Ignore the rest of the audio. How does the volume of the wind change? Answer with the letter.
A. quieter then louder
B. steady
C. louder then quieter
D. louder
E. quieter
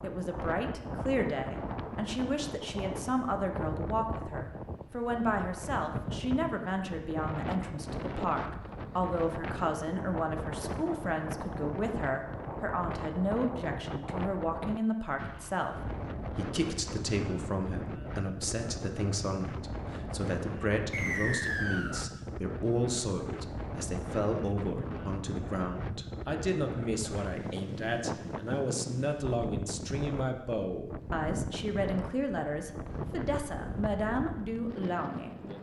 B.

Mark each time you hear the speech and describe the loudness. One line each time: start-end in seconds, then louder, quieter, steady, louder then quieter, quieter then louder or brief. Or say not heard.
0.0-35.3 steady.